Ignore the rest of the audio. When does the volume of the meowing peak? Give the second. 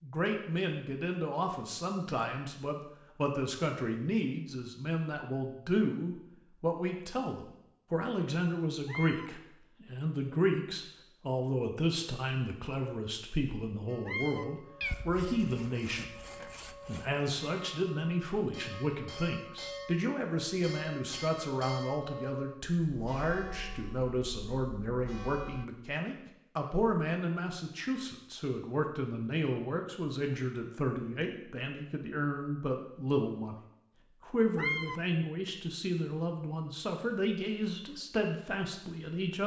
35 s.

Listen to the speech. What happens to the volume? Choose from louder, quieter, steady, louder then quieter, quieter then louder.
steady.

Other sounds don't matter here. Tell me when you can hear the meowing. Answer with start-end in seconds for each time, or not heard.
8.8-9.3, 14.1-15.3, 34.5-35.0.